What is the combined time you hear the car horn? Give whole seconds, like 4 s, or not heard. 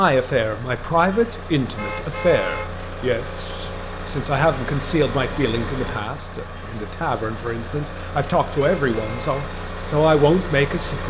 2 s.